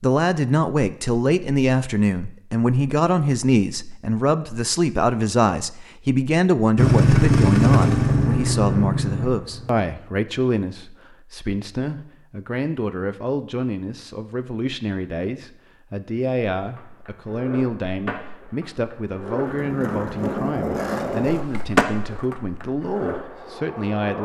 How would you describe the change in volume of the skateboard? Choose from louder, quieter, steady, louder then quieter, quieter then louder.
louder then quieter.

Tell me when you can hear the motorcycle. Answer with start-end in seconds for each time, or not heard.
6.8-9.9.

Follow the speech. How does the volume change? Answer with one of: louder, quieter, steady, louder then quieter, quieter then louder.
quieter.